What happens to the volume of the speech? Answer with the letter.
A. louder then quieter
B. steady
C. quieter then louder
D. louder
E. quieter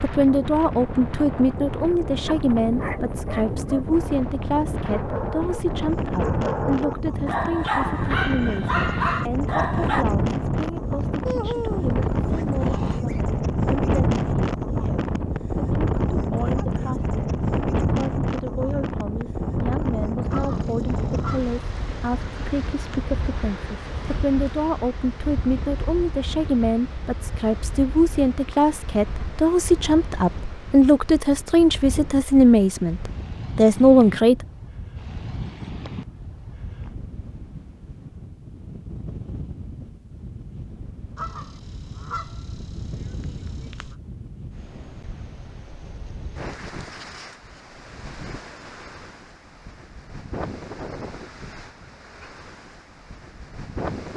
C.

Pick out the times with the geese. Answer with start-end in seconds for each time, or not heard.
11.2-13.2, 20.3-23.1, 41.1-44.0.